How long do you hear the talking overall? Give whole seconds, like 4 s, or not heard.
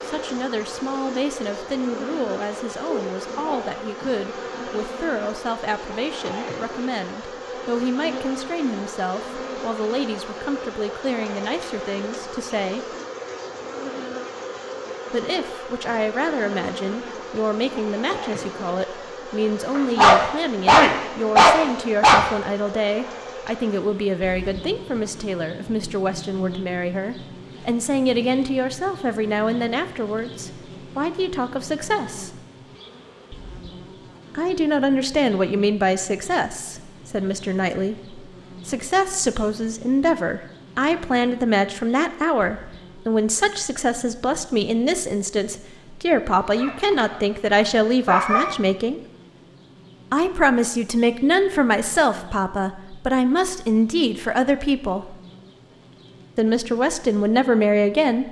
52 s.